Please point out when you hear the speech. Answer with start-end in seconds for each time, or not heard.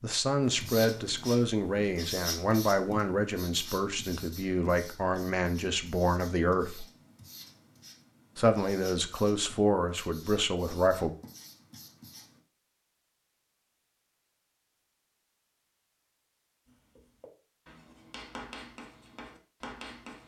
0.0-6.8, 8.3-11.2.